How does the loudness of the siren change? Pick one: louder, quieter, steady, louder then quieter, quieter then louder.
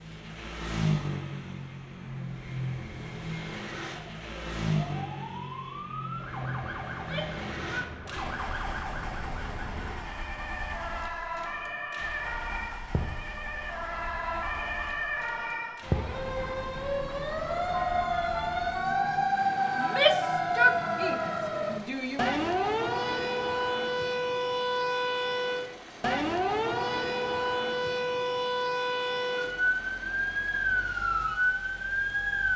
louder.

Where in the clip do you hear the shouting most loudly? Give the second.
20 s.